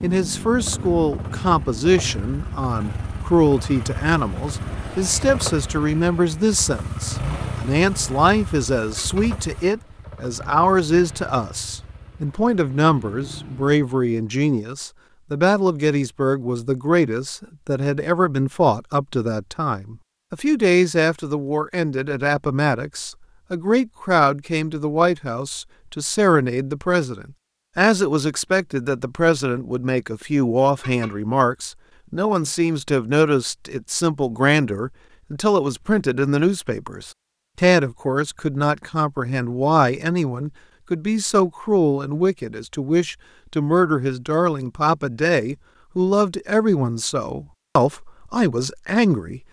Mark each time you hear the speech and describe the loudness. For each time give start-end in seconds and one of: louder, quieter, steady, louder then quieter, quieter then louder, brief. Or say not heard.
0.0-49.4 steady.